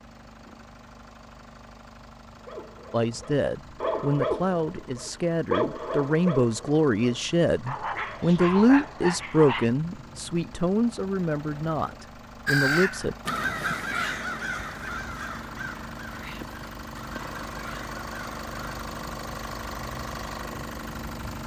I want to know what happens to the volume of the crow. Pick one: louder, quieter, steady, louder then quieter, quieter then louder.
quieter.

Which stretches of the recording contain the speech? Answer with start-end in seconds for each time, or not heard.
2.9-13.2.